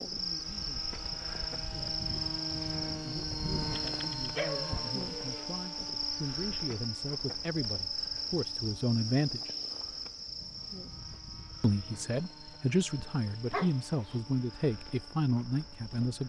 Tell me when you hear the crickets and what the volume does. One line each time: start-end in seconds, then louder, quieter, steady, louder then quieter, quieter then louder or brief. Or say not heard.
0.0-16.2 quieter.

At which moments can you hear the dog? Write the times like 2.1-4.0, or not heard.
3.8-5.5, 13.5-14.2.